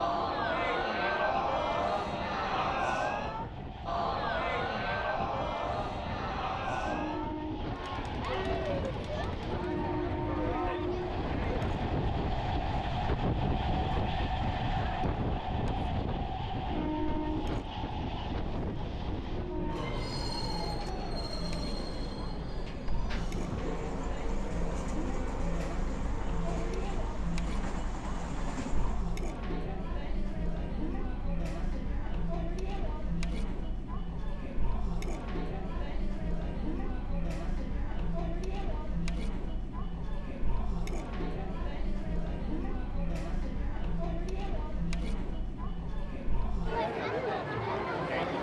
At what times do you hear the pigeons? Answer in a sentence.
The pigeons can't be heard in this clip.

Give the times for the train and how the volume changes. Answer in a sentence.
You can hear the train from 0.0 to 29.2 s, getting louder then quieter.